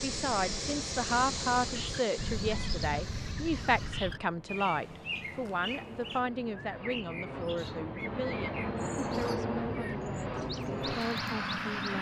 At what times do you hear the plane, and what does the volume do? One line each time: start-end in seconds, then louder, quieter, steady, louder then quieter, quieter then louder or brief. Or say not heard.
0.0-11.9 quieter then louder.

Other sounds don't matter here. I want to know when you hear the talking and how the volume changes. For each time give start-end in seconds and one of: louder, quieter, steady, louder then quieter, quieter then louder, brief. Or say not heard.
0.0-11.9 quieter.